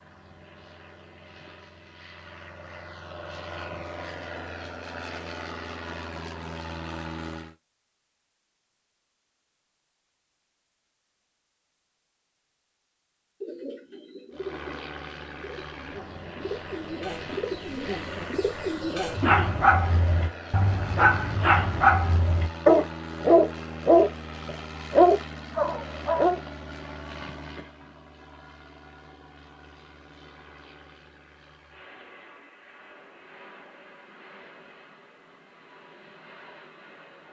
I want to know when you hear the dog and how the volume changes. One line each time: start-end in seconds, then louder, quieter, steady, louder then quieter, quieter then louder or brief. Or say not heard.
19.1-26.4 louder.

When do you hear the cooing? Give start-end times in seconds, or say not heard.
13.4-19.5.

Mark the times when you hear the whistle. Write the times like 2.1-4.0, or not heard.
not heard.